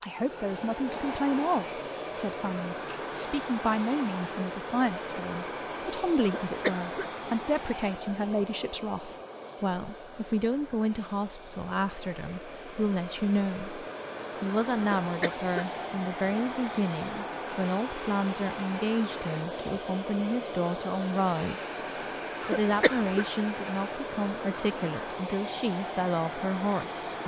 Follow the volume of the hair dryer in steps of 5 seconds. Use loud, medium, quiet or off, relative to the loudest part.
loud, loud, medium, loud, loud, loud.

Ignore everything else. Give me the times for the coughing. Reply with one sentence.
You can hear the coughing from 6.2 to 7.0 s, from 14.8 to 15.8 s and from 22.4 to 23.2 s.